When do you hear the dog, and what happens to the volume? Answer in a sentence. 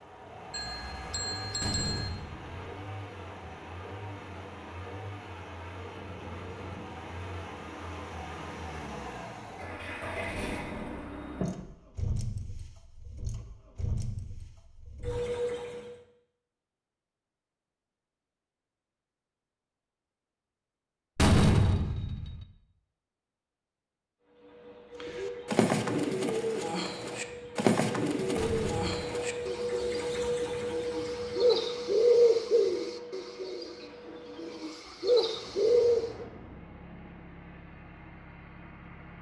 The dog can't be heard in this clip.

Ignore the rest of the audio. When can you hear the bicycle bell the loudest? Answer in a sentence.
The volume of the bicycle bell peaks at 2 seconds.